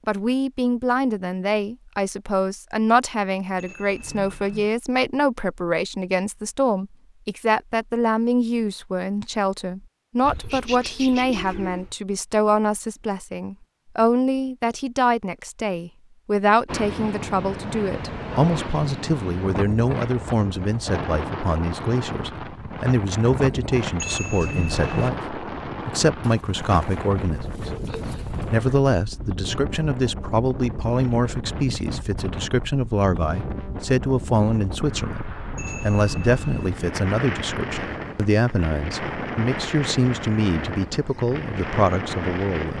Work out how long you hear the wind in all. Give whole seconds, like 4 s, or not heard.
26 s.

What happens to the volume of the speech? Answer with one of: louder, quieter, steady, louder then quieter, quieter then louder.
steady.